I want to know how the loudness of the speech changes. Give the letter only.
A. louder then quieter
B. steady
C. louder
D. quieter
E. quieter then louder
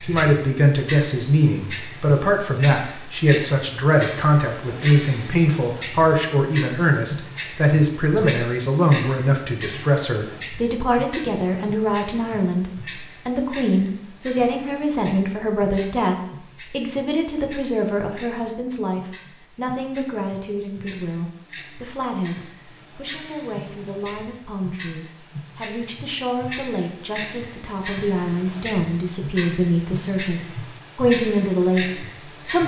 E.